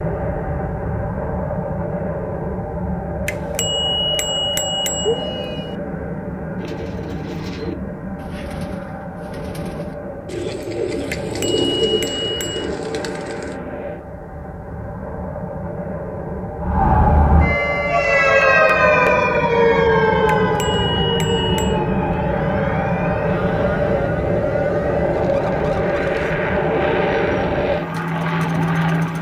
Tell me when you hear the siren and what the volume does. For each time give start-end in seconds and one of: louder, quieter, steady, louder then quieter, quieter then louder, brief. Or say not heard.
16.6-29.1 quieter.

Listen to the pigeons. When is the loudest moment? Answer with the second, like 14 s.
12 s.